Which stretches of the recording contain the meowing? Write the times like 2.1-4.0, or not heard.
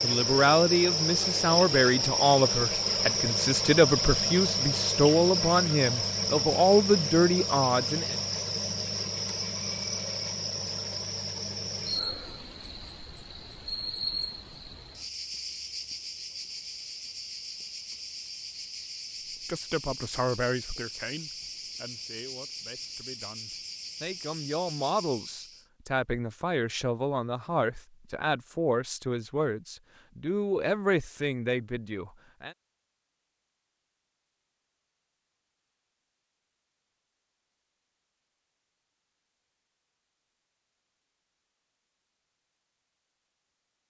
not heard.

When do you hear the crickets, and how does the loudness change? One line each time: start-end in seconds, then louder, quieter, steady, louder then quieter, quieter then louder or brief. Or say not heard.
0.0-25.6 quieter.